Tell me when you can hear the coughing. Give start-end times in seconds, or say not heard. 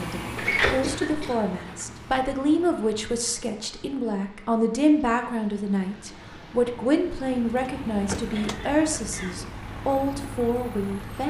0.8-1.4, 8.2-9.5.